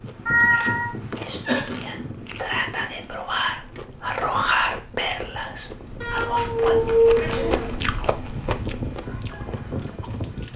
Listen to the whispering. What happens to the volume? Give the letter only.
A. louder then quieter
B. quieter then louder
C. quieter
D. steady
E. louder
A.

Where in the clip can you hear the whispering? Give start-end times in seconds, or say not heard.
0.5-6.8.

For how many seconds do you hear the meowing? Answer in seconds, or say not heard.
2 s.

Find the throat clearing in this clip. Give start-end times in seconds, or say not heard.
1.0-1.8, 7.0-7.7.